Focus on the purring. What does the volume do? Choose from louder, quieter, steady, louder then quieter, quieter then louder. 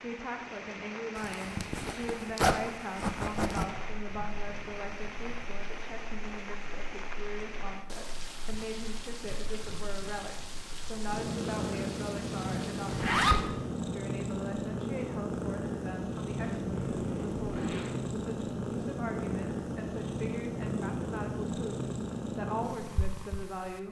louder.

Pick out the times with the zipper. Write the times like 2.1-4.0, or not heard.
1.1-3.6, 12.8-13.4, 16.6-17.9.